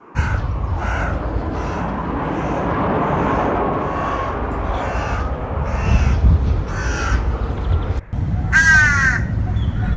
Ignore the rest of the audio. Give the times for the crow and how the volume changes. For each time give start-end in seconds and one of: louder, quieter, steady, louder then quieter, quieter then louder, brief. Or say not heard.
0.1-9.9 quieter then louder.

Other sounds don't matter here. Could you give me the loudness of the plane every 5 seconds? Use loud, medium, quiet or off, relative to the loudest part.
loud, medium.